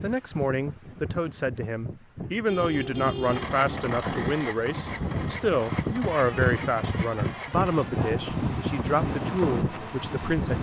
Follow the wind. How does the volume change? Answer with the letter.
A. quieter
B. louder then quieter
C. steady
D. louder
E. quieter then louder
D.